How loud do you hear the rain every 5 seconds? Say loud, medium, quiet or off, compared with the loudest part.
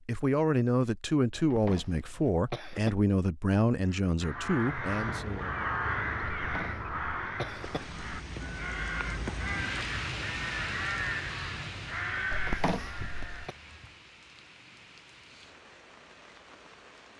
off, loud, loud, quiet.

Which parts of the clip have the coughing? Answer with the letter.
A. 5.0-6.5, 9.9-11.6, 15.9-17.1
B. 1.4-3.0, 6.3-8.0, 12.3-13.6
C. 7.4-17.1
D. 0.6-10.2
B.